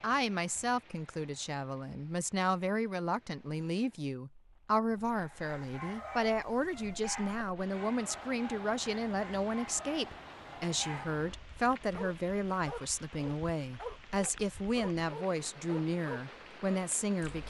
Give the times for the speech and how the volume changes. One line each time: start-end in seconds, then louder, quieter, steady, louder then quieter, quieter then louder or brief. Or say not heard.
0.0-17.4 steady.